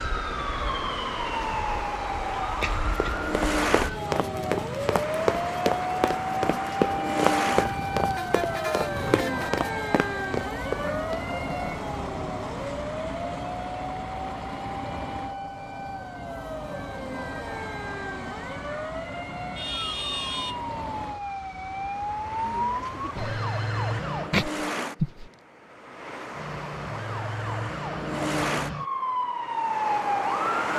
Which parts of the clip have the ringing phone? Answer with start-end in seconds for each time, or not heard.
23.1-25.3.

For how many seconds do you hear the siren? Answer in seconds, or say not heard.
29 s.